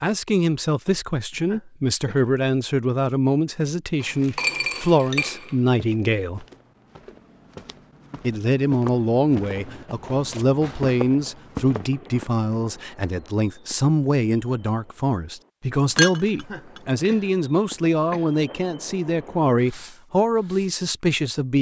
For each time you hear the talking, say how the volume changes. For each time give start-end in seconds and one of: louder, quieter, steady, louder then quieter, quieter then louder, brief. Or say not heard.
0.0-6.5 steady
8.2-21.5 steady.